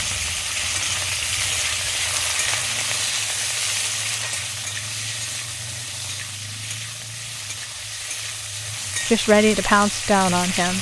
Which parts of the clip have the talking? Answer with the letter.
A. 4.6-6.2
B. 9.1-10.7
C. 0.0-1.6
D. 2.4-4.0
B.